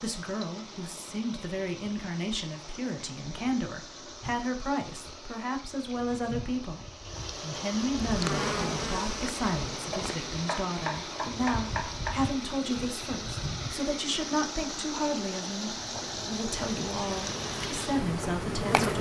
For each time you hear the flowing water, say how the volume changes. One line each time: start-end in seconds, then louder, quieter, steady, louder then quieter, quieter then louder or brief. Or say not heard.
0.0-18.9 louder.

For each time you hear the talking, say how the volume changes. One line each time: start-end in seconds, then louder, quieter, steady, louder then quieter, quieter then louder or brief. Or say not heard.
0.0-18.9 steady.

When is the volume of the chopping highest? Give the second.
12 s.